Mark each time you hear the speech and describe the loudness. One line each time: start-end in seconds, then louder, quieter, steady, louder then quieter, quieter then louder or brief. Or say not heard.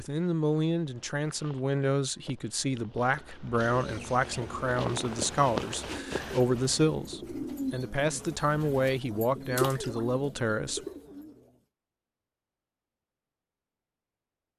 0.0-10.8 steady.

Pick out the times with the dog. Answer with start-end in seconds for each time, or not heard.
not heard.